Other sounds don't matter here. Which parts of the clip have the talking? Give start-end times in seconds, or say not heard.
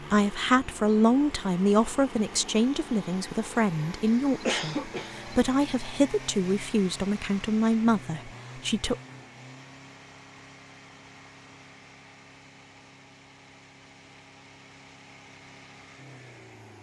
0.1-8.9.